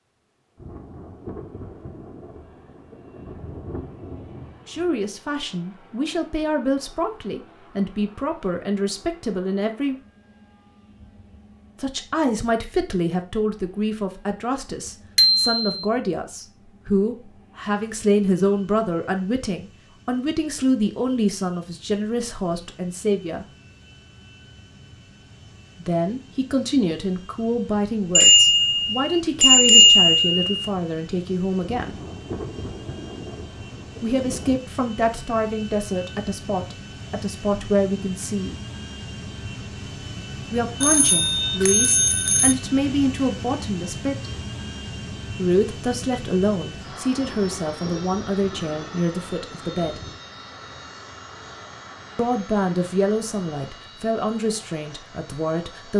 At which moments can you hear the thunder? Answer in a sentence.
The thunder can be heard from 0.6 to 5.0 s, from 31.6 to 34.6 s and from 47.1 to 50.2 s.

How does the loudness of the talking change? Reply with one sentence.
The loudness of the talking stays about the same.